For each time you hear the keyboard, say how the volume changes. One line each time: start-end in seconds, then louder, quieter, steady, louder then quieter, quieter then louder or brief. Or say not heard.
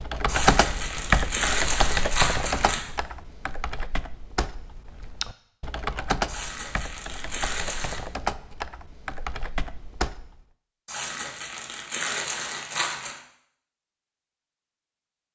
0.0-10.4 quieter.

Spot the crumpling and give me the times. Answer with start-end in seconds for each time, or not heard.
0.2-2.8, 6.2-8.0, 10.8-13.2.